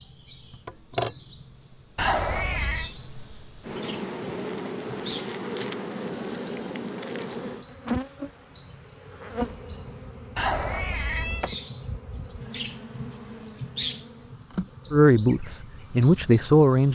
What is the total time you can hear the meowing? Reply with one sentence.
The meowing can be heard for 2 seconds in total.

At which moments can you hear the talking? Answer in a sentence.
You can hear the talking from 14.9 to 16.9 s.